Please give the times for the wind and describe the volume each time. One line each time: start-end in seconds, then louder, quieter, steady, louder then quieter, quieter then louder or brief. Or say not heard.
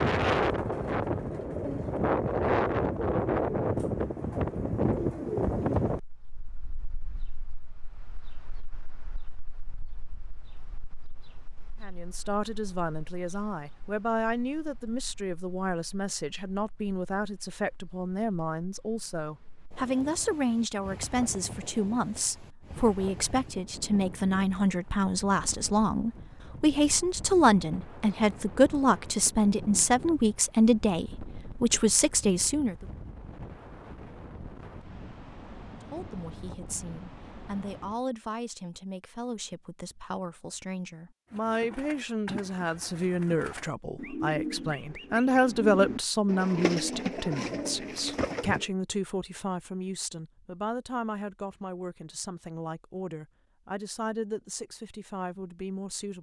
0.0-38.0 quieter then louder.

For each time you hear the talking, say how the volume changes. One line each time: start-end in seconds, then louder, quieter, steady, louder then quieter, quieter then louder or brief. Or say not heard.
11.8-32.9 louder
35.7-56.1 louder then quieter.